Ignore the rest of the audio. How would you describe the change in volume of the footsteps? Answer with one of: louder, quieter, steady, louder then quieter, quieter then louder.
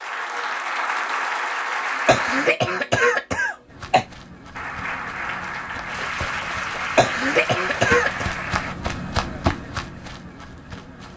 louder.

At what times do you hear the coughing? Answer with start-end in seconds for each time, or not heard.
2.0-4.0, 7.0-8.3.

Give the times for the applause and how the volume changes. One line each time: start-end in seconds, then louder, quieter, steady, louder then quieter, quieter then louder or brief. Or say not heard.
0.0-2.5 brief
4.5-8.8 steady.